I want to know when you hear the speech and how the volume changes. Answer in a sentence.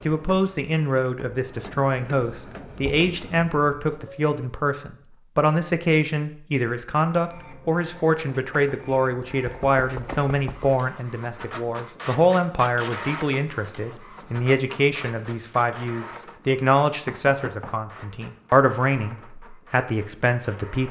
The speech can be heard from 0.1 to 20.8 s, at a steady volume.